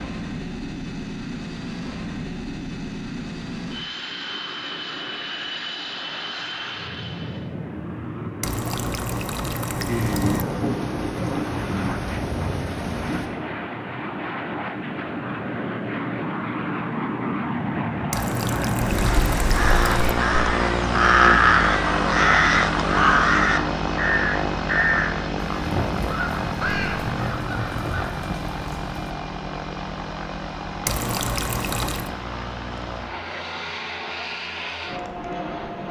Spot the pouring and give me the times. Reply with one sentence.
The pouring can be heard from 8.4 to 10.4 s, from 18.1 to 20.1 s and from 30.9 to 32.1 s.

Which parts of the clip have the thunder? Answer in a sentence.
The thunder can be heard from 9.8 to 13.3 s and from 25.5 to 29.1 s.